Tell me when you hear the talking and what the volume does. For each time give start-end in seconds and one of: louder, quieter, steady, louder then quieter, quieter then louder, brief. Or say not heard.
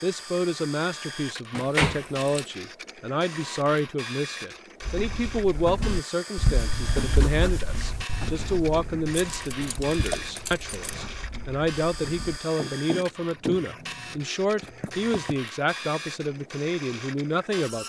0.0-17.8 steady.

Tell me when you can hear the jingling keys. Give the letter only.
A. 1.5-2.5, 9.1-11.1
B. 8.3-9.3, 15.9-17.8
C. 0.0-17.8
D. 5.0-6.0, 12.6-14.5
A.